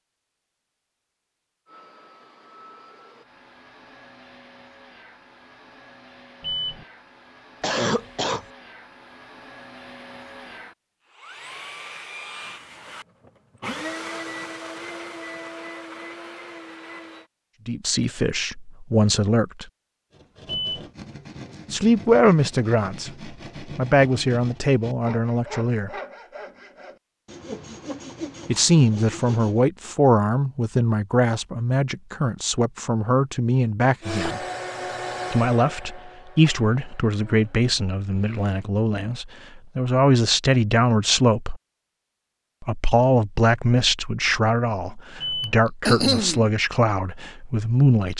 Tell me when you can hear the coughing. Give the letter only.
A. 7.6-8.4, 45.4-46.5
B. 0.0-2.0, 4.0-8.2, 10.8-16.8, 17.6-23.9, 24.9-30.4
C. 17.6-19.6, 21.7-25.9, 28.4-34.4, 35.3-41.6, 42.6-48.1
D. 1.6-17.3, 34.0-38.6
A.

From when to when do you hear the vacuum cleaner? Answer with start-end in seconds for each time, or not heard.
1.6-17.3, 34.0-38.6.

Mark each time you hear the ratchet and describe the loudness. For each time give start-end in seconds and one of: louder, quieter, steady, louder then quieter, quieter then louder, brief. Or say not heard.
not heard.